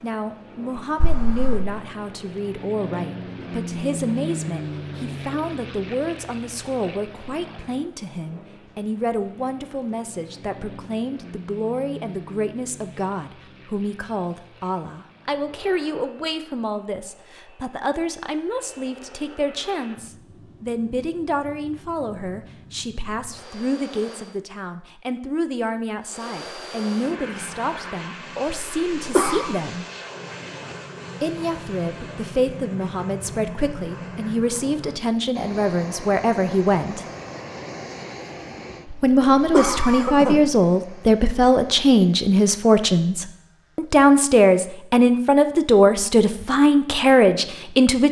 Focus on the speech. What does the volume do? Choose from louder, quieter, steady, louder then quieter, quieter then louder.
louder.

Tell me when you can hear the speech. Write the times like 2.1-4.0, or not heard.
0.0-29.9, 31.2-37.0, 39.0-48.0.